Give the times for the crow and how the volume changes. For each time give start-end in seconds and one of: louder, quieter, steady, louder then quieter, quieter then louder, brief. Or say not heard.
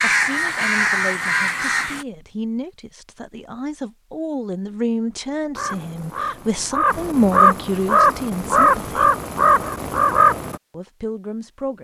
0.0-2.0 brief
5.5-10.6 louder.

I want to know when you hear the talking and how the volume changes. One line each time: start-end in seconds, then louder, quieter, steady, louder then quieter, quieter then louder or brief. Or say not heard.
0.0-9.0 louder
10.7-11.7 brief.